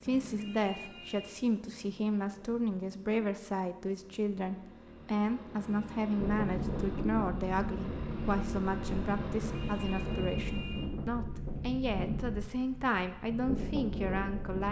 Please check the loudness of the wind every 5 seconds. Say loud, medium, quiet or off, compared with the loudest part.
off, loud, loud.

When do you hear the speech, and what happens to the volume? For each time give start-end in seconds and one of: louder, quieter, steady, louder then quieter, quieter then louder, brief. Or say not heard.
0.0-14.6 steady.